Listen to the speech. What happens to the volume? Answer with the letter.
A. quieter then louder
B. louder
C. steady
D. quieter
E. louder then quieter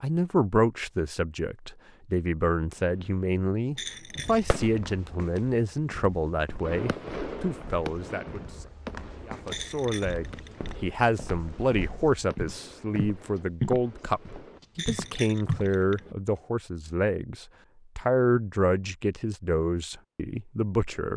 C.